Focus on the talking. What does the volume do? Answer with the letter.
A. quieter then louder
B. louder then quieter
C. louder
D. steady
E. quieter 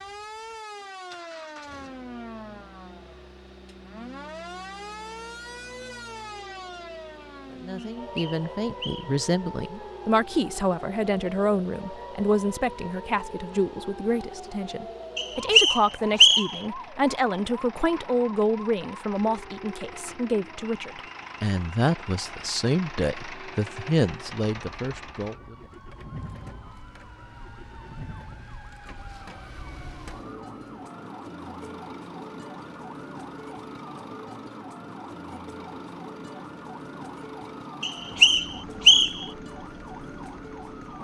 D.